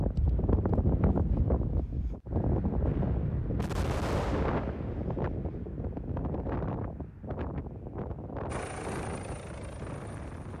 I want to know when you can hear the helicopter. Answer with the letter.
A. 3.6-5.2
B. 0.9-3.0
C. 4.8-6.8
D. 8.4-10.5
D.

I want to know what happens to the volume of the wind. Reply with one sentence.
The volume of the wind goes down.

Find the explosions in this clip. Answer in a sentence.
The explosions can be heard from 3.6 to 5.2 s.